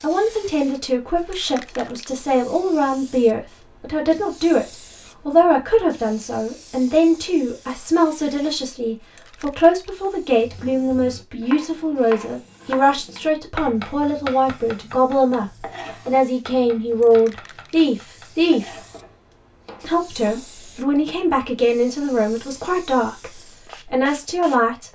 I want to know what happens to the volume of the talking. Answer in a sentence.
The loudness of the talking stays about the same.